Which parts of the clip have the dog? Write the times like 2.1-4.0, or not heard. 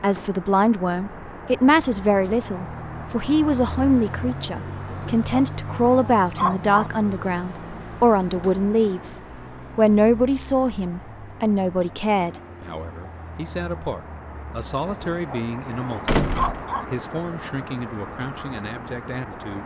4.8-6.9, 14.8-16.9.